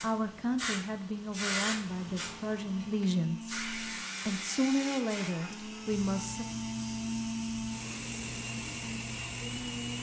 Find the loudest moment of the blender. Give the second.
7 s.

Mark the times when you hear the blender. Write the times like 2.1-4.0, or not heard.
1.8-9.9.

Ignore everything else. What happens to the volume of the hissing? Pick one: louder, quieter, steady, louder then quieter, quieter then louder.
quieter.